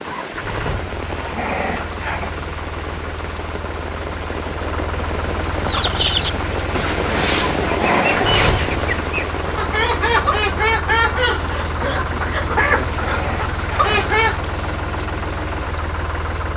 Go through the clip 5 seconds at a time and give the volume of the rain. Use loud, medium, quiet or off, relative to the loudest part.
medium, loud, medium, medium.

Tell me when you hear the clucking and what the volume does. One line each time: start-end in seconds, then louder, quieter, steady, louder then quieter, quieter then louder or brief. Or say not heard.
5.7-14.4 steady.